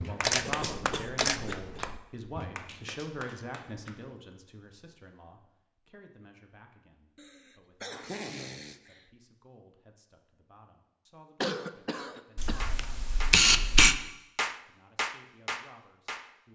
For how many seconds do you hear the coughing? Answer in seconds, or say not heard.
5 s.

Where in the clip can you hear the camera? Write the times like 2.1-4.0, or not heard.
0.2-1.9, 12.3-13.9.